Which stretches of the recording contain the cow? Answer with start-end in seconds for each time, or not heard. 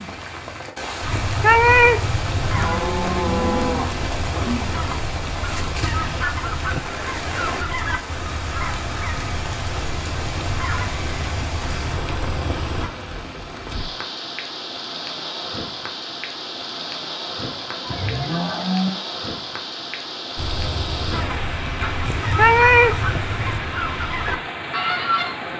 2.0-4.7, 17.4-18.9.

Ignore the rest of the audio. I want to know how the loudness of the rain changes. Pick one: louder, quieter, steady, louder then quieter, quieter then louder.
steady.